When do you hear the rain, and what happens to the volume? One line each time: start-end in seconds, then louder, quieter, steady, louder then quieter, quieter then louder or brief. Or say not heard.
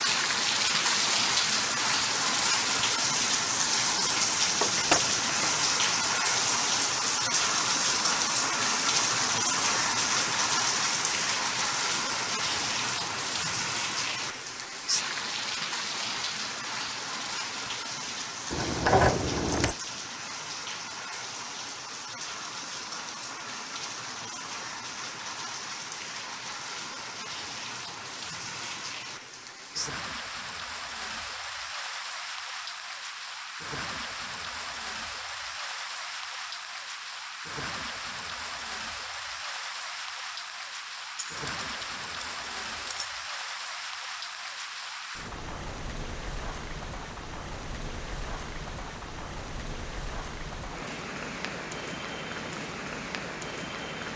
0.0-54.1 quieter.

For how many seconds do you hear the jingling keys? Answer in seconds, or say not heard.
4 s.